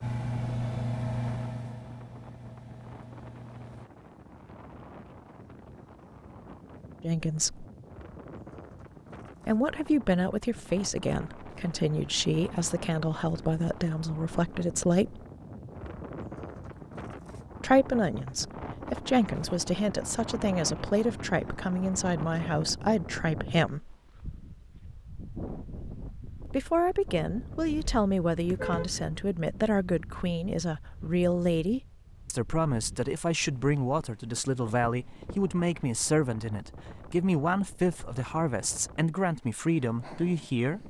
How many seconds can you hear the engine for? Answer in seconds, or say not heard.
4 s.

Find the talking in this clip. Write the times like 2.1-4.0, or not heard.
7.0-7.7, 9.4-15.2, 17.6-23.9, 26.4-40.8.